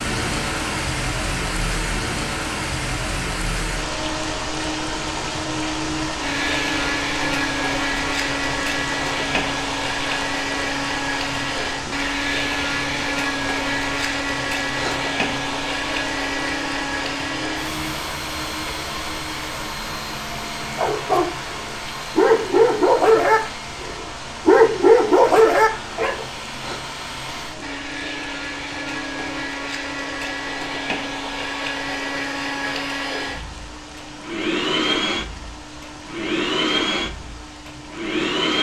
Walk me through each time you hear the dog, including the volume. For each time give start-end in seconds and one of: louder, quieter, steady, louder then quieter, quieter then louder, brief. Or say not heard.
20.8-26.2 louder.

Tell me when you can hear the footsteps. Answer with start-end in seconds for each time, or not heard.
not heard.